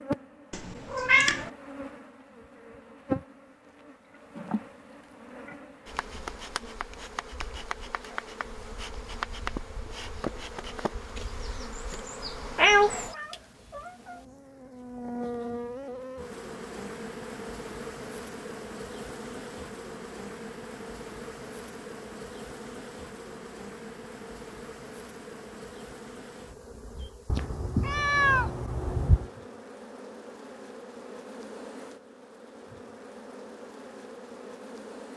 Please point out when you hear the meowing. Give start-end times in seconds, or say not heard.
0.5-1.5, 12.6-14.2, 27.2-29.2.